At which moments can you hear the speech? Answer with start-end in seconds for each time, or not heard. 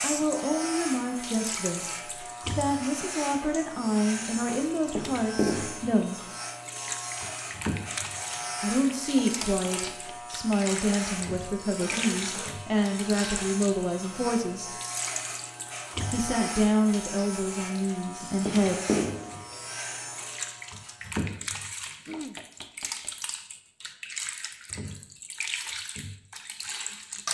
0.0-6.2, 8.6-14.7, 16.1-18.8.